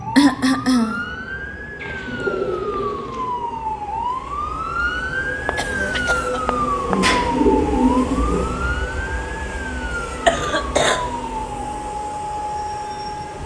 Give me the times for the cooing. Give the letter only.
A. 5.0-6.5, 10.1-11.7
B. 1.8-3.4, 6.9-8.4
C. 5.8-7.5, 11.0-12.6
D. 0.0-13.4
B.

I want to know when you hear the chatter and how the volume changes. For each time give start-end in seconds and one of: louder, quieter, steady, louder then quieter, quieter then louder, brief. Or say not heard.
not heard.